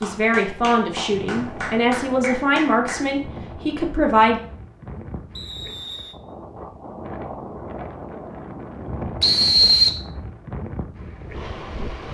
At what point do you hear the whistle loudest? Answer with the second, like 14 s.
10 s.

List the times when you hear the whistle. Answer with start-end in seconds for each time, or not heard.
1.1-1.9, 5.3-6.2, 9.2-10.0.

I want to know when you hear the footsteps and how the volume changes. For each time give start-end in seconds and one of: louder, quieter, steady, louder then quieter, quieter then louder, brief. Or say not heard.
not heard.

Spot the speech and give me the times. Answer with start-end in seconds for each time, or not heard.
0.0-4.4.